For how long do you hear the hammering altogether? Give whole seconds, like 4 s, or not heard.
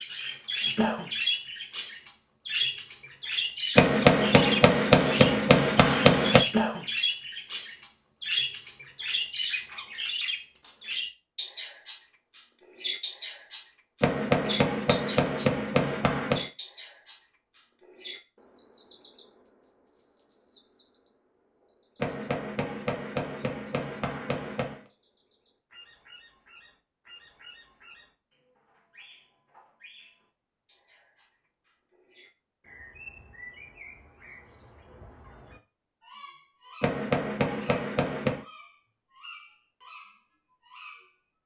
10 s.